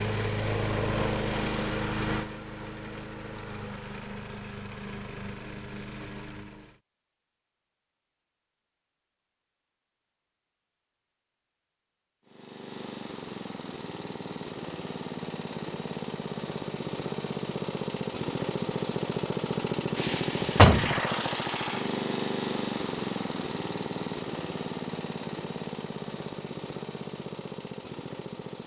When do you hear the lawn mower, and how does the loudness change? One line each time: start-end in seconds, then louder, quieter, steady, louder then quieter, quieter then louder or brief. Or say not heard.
0.0-6.8 quieter
12.2-28.6 louder then quieter.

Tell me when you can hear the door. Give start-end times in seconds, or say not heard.
19.9-20.9.